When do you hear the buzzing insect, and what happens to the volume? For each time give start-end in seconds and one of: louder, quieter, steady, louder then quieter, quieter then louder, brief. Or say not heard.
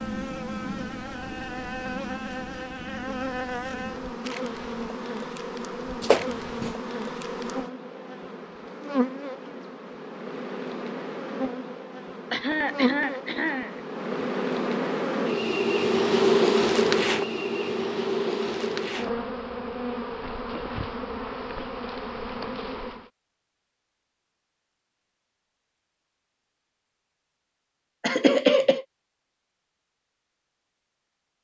0.0-23.1 louder then quieter.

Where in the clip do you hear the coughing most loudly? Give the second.
28 s.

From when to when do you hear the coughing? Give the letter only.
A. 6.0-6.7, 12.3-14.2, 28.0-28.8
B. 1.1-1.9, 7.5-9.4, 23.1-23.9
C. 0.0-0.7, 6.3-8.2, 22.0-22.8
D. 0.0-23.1
A.